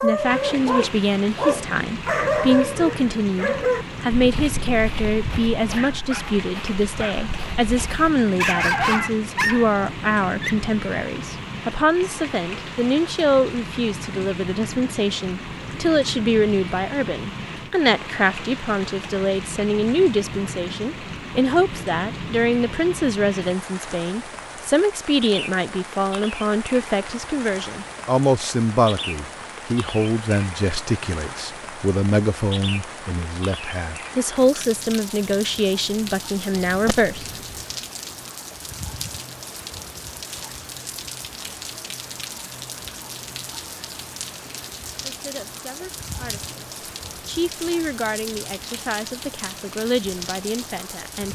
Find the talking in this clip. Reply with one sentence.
The talking can be heard from 0.0 to 37.2 s and from 45.0 to 51.3 s.